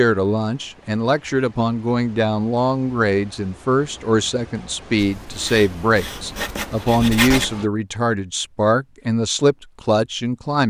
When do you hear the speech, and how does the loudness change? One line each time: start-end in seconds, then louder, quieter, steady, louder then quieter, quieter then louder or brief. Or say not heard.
0.0-10.6 steady.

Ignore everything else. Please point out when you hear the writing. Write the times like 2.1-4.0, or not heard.
5.0-7.5.